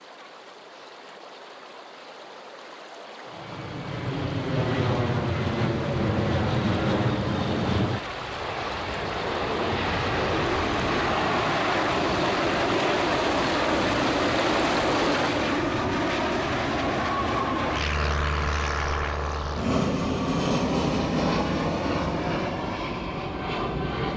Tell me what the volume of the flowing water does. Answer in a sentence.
The loudness of the flowing water goes up.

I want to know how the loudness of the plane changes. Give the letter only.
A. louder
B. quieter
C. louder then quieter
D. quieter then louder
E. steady
E.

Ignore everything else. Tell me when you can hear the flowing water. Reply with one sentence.
You can hear the flowing water from 0.0 to 15.6 s.